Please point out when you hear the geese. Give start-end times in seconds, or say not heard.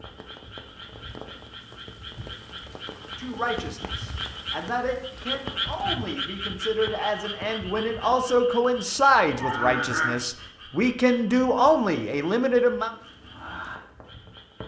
9.3-10.2.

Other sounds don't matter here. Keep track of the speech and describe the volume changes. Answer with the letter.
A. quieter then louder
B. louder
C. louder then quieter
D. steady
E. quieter
B.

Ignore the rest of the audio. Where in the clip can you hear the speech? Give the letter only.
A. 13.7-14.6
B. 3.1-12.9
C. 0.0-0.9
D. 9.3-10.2
B.